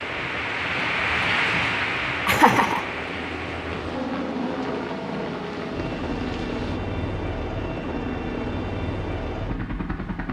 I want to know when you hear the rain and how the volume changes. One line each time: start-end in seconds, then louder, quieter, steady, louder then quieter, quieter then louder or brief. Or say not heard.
0.0-6.8 quieter.